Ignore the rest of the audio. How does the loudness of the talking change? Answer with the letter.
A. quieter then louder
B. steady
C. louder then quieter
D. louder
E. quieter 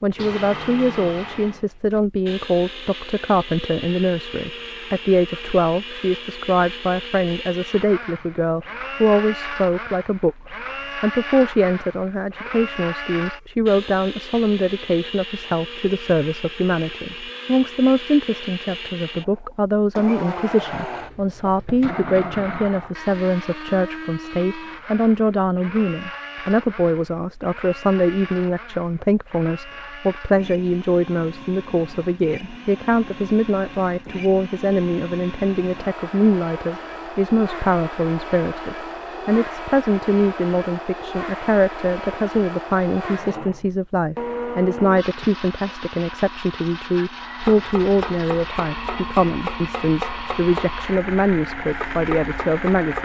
B.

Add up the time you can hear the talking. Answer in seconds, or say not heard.
53 s.